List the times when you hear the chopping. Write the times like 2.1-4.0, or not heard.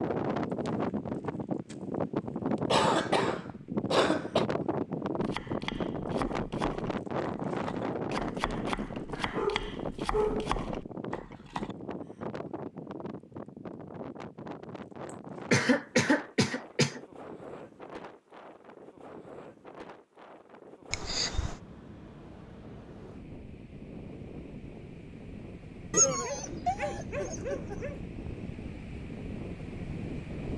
5.2-11.8.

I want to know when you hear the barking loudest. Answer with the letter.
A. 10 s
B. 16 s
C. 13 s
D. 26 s
D.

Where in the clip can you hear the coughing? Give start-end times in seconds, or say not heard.
2.6-4.5, 15.5-17.0, 20.9-21.6.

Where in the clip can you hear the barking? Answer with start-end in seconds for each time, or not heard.
9.2-10.5, 25.9-27.9.